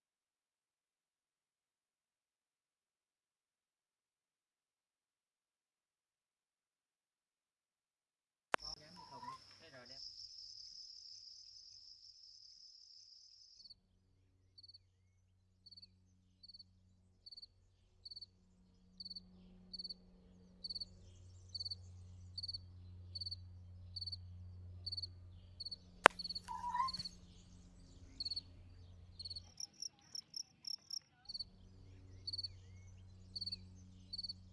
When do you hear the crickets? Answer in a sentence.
You can hear the crickets from 8.6 to 34.4 s.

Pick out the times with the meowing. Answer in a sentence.
The meowing can be heard from 8.5 to 9.4 s and from 26.1 to 26.9 s.